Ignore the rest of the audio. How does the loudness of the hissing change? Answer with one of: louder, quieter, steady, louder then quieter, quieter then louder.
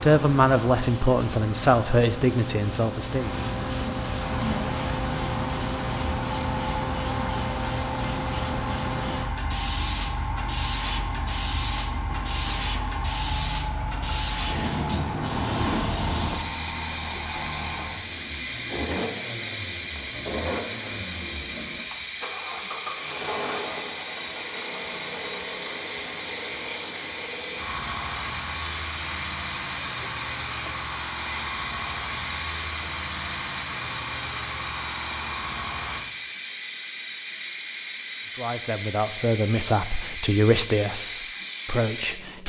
steady.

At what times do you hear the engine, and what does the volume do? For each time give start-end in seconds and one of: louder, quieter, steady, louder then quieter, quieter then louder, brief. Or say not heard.
4.2-36.0 steady.